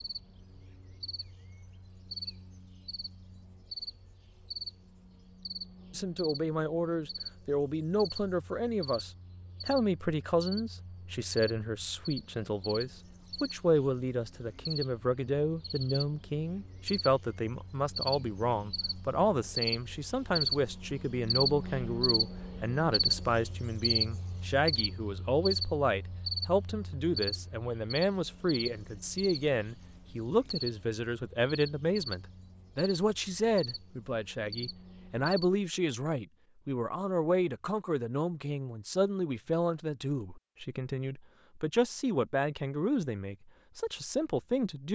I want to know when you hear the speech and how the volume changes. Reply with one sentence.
The speech can be heard from 5.9 to 44.9 s, at a steady volume.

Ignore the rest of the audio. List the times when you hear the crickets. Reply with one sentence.
The crickets can be heard from 0.0 to 35.5 s.